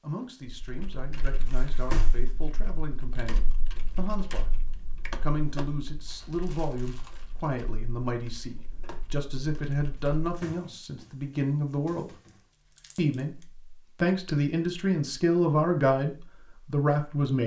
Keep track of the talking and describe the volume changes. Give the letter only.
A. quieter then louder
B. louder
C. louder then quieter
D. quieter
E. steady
B.